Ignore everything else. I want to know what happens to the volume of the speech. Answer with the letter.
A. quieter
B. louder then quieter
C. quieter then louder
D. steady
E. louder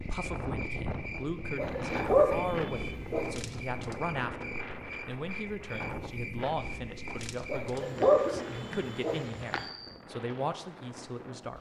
D.